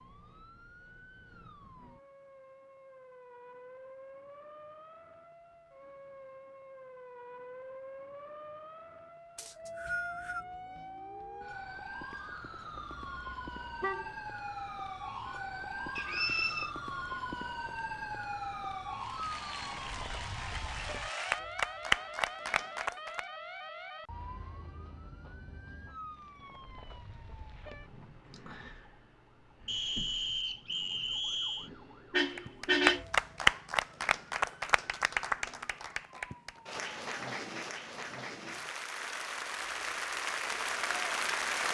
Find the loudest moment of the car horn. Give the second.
33 s.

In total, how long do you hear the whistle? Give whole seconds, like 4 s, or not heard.
4 s.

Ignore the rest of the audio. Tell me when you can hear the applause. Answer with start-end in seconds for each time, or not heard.
18.9-23.2, 32.4-41.7.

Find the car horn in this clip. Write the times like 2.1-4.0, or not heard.
12.8-14.2, 32.1-33.0.